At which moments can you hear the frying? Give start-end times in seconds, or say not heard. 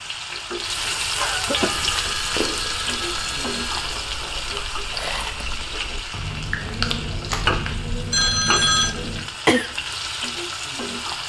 0.0-11.2.